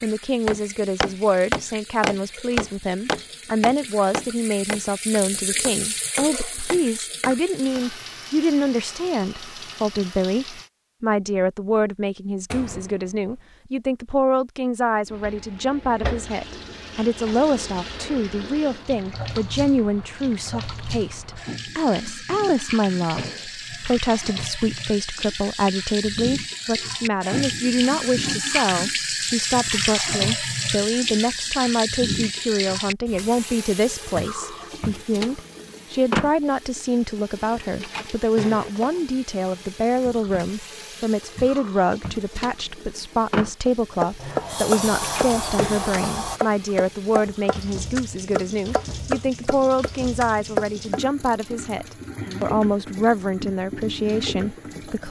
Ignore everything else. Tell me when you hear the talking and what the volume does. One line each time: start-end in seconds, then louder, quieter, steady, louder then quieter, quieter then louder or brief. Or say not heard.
0.0-55.0 steady.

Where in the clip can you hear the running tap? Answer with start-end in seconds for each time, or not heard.
0.0-10.7, 15.1-55.0.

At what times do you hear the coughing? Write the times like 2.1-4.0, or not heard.
not heard.